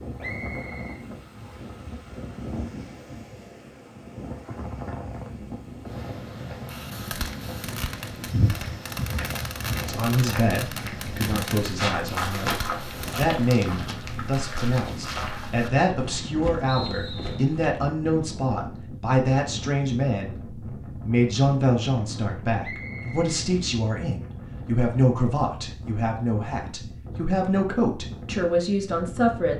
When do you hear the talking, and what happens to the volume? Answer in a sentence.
The talking can be heard from 9.8 to 29.5 s, at a steady volume.